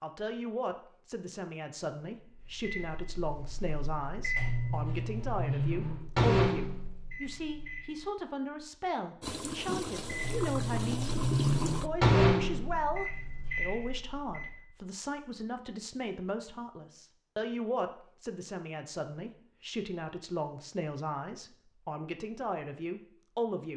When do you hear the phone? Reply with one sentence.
The phone can't be heard in this clip.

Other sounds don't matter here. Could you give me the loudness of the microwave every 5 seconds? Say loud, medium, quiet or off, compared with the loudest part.
medium, loud, loud, off, off.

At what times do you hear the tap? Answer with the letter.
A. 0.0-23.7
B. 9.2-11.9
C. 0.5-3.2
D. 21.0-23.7
B.